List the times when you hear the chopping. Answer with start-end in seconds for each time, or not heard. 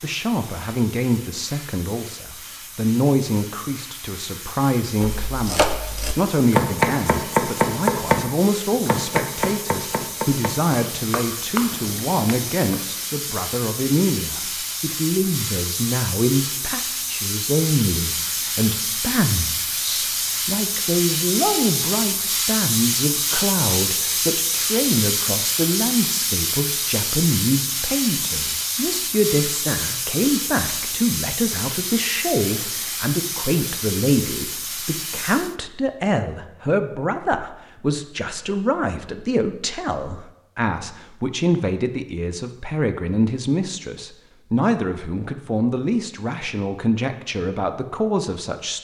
5.0-12.8.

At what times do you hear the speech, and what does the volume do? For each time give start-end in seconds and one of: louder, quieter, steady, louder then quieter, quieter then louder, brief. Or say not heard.
0.0-48.8 steady.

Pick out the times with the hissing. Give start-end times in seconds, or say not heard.
0.0-35.5.